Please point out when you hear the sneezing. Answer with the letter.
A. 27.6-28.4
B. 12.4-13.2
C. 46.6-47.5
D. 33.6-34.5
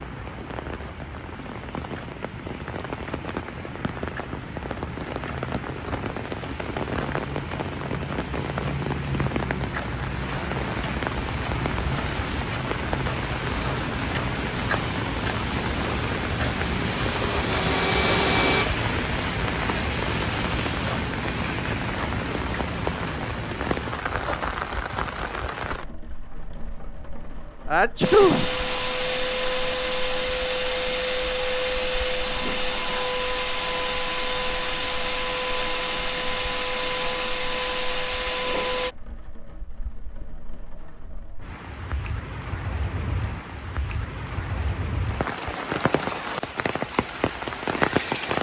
A.